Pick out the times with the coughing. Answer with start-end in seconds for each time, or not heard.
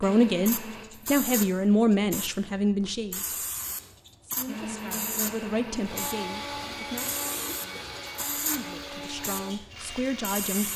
7.2-8.1.